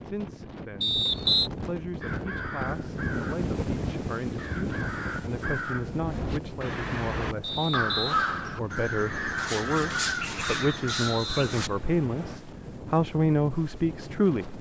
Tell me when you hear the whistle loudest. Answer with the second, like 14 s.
1 s.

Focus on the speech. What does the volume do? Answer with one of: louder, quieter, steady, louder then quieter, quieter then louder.
louder.